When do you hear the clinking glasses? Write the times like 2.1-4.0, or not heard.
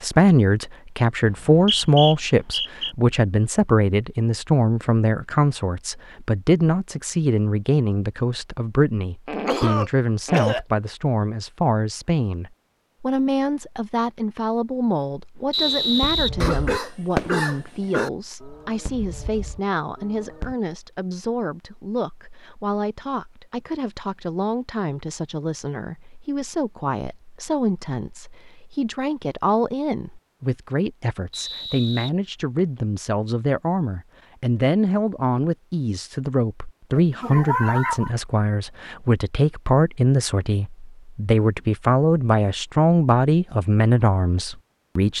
not heard.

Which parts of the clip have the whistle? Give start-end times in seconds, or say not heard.
1.2-3.0, 15.5-16.3, 31.3-32.8.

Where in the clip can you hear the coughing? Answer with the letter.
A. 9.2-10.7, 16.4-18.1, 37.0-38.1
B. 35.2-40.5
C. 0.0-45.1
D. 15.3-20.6
A.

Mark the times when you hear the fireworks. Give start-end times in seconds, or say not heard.
15.3-20.6.